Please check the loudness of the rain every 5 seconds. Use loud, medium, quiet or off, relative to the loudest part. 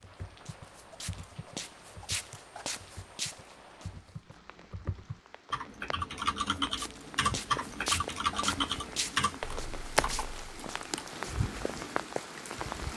quiet, loud, loud.